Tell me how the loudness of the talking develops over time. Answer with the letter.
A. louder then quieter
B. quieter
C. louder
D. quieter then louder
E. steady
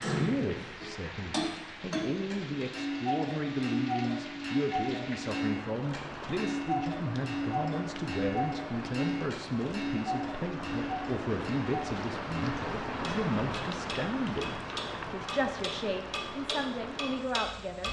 E.